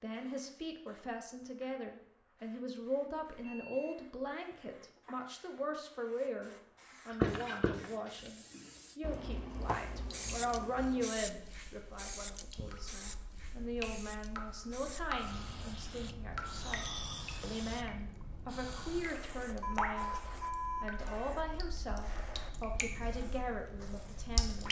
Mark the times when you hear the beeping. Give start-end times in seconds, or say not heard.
3.4-4.0, 19.6-21.4.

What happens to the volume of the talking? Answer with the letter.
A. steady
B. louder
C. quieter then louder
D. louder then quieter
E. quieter
A.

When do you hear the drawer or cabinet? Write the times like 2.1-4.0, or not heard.
not heard.